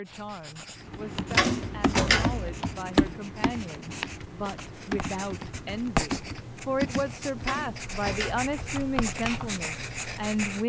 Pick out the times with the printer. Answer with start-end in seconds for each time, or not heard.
not heard.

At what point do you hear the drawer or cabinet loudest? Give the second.
2 s.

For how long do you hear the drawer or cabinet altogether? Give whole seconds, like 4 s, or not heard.
2 s.